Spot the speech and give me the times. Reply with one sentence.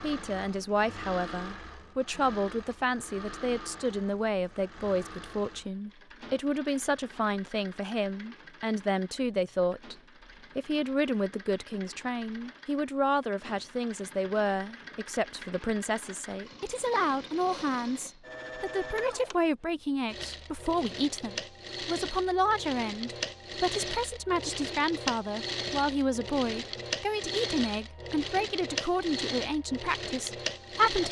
The speech can be heard from 0.0 to 9.9 s and from 10.6 to 31.0 s.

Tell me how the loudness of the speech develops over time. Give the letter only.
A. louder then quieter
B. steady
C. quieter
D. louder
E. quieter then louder
B.